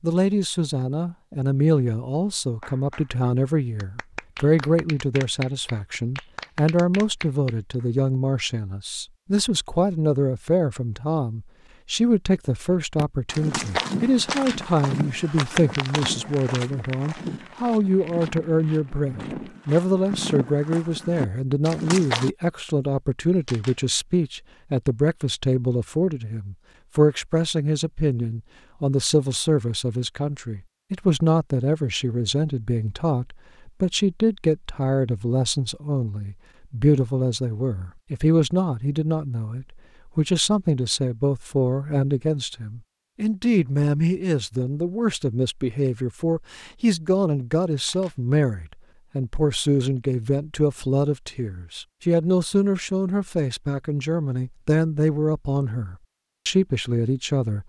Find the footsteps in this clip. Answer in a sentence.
You can hear the footsteps from 12.7 to 22.4 s.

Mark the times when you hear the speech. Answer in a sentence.
The speech can be heard from 0.0 to 57.6 s.